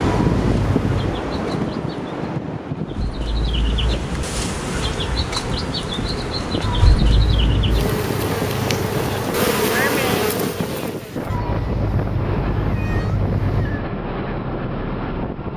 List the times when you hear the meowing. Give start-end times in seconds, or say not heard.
0.0-1.2, 6.6-7.8, 11.2-13.8.